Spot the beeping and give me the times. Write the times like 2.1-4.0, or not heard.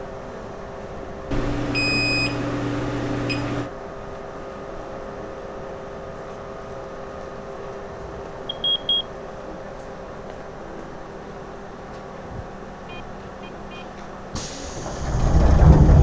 1.3-3.7, 8.4-9.1, 12.2-13.8.